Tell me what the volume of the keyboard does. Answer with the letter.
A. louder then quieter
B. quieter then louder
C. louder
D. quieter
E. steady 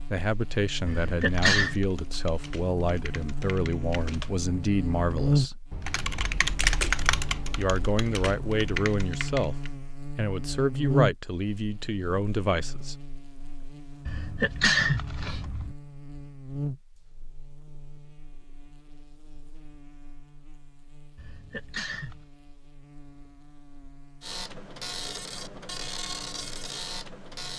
A.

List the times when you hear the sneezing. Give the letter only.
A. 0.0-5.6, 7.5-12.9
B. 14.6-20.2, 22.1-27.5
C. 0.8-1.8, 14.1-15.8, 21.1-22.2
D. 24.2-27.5
C.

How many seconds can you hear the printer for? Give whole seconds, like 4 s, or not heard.
3 s.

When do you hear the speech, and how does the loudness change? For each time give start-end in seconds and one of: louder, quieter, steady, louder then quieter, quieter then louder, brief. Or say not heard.
0.0-5.6 steady
7.5-12.9 steady.